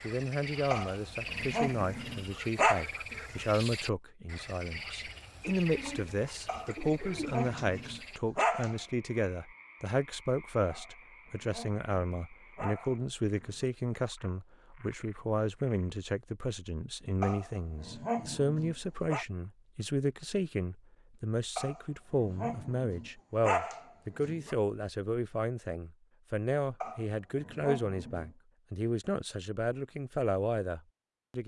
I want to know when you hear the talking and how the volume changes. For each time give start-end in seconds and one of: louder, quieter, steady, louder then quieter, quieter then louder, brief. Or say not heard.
0.0-31.4 steady.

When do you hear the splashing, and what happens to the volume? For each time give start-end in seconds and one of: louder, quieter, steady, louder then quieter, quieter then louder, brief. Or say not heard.
not heard.